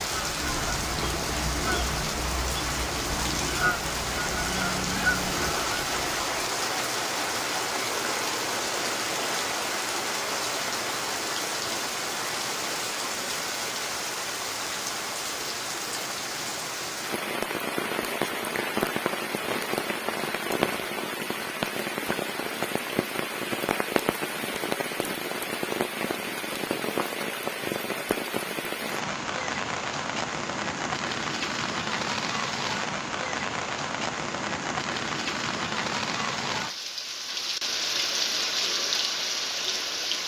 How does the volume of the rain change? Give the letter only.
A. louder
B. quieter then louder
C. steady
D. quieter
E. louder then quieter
C.